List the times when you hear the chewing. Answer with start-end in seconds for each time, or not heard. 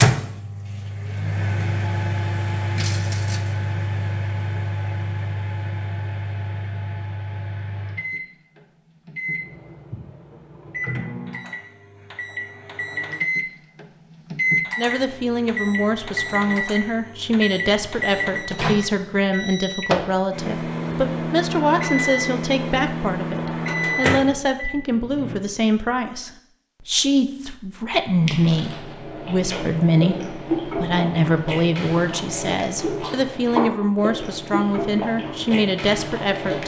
28.2-36.6.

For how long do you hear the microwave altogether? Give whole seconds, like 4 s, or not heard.
25 s.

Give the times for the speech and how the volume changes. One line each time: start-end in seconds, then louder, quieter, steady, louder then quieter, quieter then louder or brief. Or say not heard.
14.8-36.6 steady.